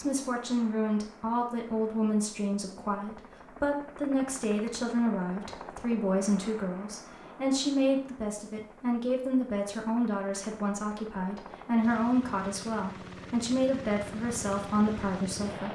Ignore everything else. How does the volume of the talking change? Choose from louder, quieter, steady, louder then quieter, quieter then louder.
steady.